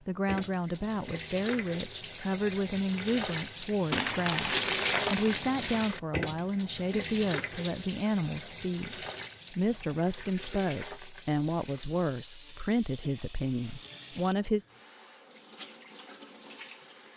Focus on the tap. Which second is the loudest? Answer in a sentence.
The loudest moment of the tap is at 5 seconds.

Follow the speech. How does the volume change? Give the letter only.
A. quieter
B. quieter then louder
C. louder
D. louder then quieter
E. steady
E.